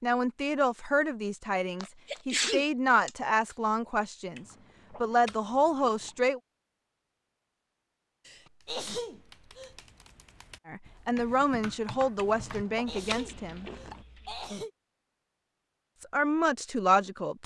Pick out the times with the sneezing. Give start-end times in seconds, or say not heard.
1.8-3.1, 8.2-9.8, 12.7-14.7.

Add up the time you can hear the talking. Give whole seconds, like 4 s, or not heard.
11 s.